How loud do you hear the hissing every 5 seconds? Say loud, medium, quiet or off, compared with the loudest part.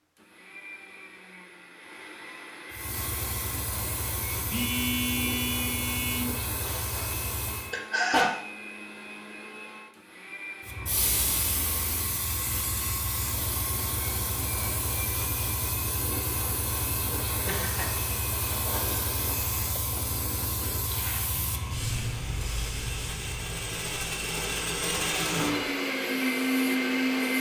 loud, loud, loud, loud, loud, off.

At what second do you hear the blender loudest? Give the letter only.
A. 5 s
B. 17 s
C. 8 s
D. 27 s
D.